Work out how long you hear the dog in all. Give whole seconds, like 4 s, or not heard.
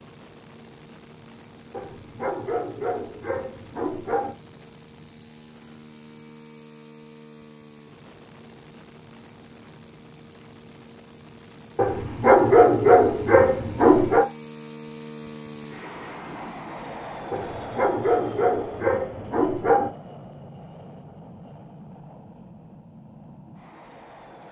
8 s.